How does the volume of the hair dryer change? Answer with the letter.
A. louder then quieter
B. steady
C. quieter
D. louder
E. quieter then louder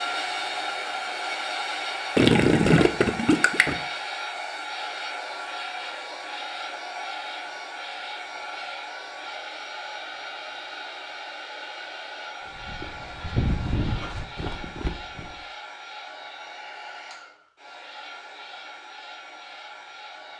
C.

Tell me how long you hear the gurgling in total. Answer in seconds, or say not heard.
2 s.